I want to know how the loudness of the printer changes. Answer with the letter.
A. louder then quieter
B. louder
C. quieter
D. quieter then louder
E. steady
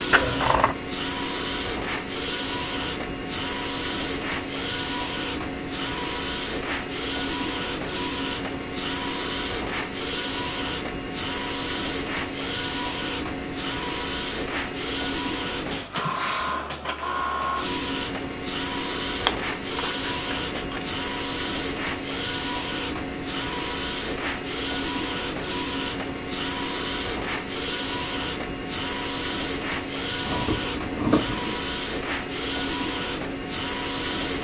E.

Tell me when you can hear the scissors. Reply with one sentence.
The scissors can be heard from 0.1 to 0.8 s, from 19.2 to 20.9 s and from 30.2 to 31.6 s.